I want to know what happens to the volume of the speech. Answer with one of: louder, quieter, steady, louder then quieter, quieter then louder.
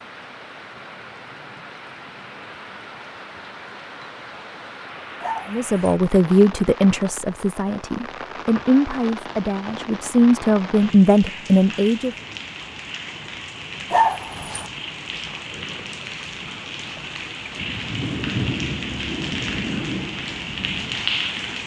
quieter then louder.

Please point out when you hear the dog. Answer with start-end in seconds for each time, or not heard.
5.2-6.0, 13.9-14.7.